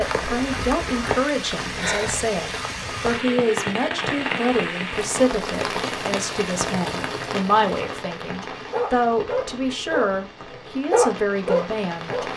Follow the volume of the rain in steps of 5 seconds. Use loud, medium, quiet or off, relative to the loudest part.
loud, loud, medium.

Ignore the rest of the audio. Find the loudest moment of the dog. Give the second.
11 s.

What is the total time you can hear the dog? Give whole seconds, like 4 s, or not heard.
3 s.